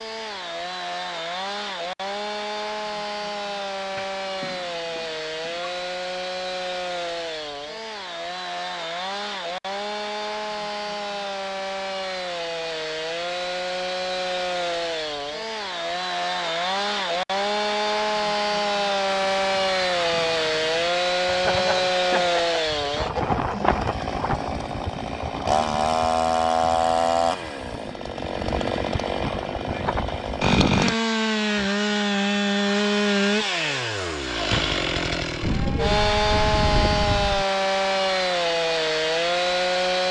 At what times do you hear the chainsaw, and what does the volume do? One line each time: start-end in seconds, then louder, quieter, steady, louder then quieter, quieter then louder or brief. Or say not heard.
0.0-40.0 louder.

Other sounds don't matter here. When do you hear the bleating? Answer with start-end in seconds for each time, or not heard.
4.0-5.8, 21.2-23.9, 35.4-37.5.